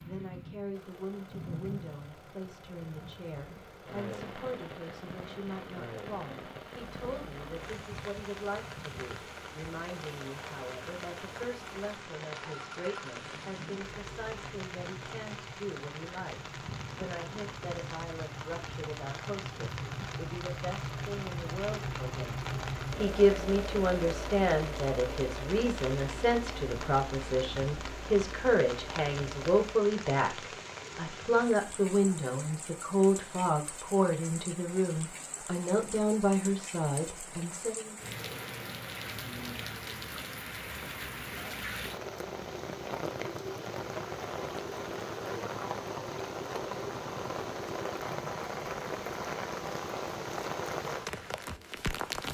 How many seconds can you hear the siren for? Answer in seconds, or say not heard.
not heard.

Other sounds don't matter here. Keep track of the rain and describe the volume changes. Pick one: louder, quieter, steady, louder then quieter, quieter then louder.
louder.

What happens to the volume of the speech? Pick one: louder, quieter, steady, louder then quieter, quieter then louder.
louder.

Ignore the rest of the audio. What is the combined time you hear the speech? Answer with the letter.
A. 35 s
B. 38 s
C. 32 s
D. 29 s
B.